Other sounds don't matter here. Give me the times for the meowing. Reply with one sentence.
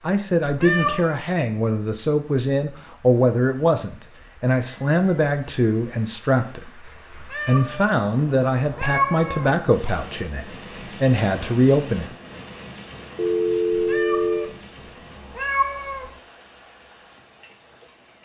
You can hear the meowing from 0.5 to 1.1 s, from 7.2 to 7.9 s, from 8.7 to 9.5 s, from 13.7 to 14.5 s and from 15.3 to 16.1 s.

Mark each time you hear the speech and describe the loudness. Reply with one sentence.
You can hear the speech from 0.0 to 12.1 s, at a steady volume.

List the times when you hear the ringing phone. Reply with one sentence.
You can hear the ringing phone from 4.7 to 5.3 s and from 13.2 to 14.5 s.